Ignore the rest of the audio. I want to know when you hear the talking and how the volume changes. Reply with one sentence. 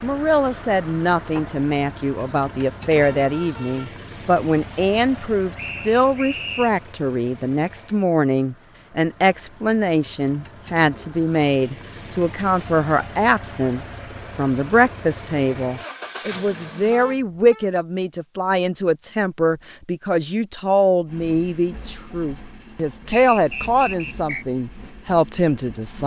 The talking can be heard from 0.0 to 26.0 s, at a steady volume.